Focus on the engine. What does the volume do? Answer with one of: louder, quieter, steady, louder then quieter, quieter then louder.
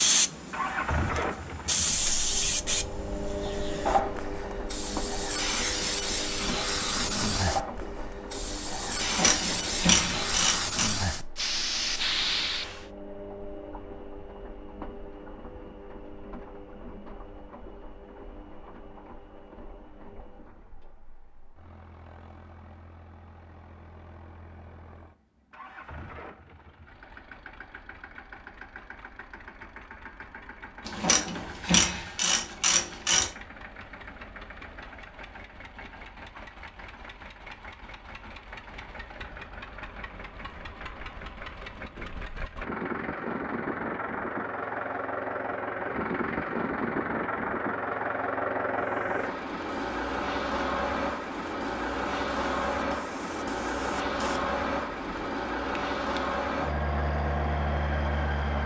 quieter then louder.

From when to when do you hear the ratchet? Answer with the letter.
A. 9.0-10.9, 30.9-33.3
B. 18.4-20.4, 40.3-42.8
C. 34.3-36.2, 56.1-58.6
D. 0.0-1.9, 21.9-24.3
A.